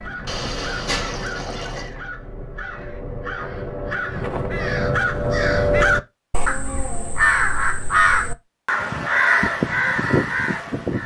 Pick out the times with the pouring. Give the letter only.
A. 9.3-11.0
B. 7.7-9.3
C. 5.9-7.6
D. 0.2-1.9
D.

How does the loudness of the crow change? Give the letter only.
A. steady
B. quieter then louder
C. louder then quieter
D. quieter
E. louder
E.